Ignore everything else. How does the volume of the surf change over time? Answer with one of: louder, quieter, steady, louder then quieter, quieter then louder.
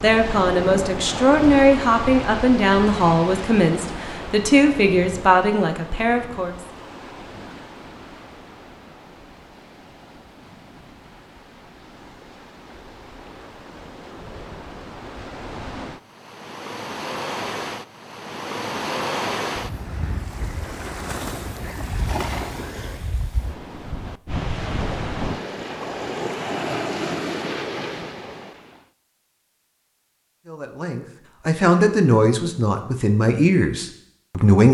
quieter then louder.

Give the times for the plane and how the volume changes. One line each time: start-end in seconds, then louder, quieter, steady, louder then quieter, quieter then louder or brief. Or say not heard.
not heard.